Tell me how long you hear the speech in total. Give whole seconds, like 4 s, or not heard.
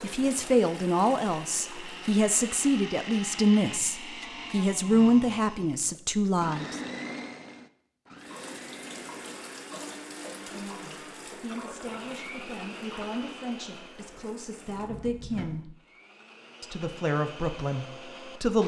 14 s.